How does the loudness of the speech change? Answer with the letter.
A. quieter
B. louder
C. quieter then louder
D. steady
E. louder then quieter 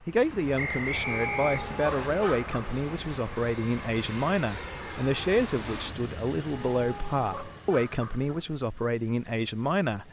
D.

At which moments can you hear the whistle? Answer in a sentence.
The whistle can be heard from 0.6 to 2.1 s.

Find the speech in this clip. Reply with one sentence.
You can hear the speech from 0.0 to 10.0 s.